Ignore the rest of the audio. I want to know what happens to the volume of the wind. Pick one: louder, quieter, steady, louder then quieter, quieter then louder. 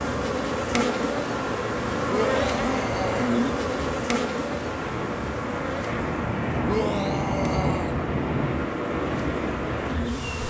louder.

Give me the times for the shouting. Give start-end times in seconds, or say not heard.
2.0-3.4, 6.7-8.0.